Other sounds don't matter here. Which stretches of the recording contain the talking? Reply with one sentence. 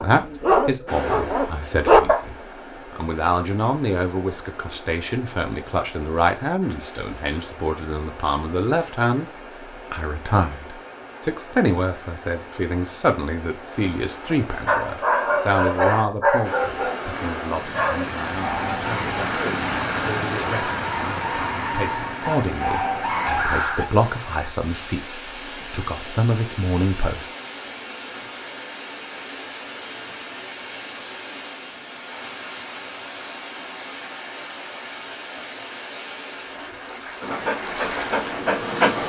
The talking can be heard from 0.0 to 9.3 s and from 9.9 to 27.3 s.